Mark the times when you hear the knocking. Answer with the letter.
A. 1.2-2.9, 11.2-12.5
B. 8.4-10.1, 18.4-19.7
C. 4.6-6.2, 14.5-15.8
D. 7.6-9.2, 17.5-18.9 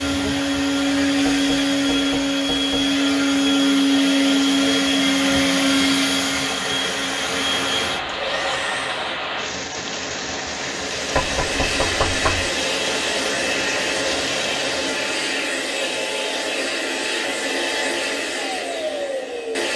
A.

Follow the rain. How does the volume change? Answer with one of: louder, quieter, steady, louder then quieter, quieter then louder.
louder.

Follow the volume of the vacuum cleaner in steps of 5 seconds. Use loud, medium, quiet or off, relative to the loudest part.
loud, loud, medium, medium.